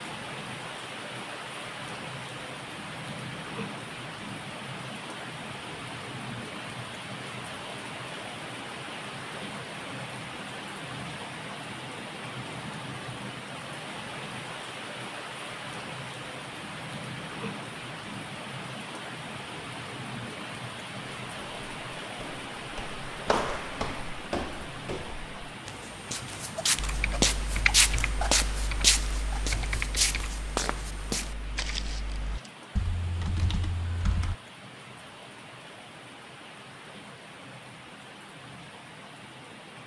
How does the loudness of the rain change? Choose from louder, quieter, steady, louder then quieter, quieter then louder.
quieter.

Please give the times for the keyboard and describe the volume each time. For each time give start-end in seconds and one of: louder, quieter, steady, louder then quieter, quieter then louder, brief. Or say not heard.
26.8-34.4 quieter then louder.